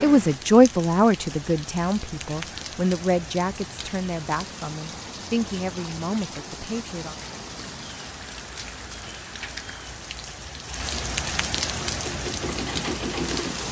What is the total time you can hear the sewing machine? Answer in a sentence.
You can hear the sewing machine for 2 seconds altogether.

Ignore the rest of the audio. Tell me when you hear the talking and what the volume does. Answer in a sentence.
The talking can be heard from 0.0 to 7.2 s, getting quieter.